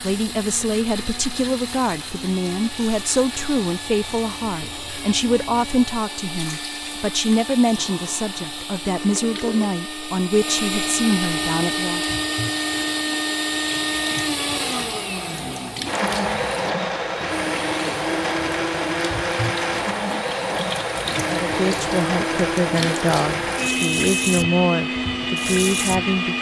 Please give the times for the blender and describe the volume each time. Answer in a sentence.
You can hear the blender from 0.0 to 26.3 s, getting louder.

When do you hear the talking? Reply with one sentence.
You can hear the talking from 0.0 to 12.2 s and from 21.2 to 26.3 s.